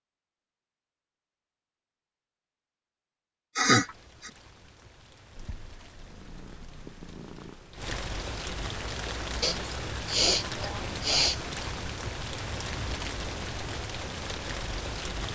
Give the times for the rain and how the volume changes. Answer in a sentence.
The rain can be heard from 3.6 to 15.2 s, getting louder.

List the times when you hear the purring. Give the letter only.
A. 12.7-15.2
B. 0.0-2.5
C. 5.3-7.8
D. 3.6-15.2
C.